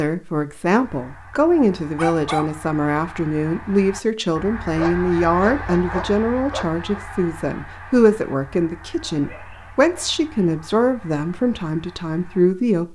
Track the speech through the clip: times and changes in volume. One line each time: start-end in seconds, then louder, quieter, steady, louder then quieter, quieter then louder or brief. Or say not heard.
0.0-12.8 steady.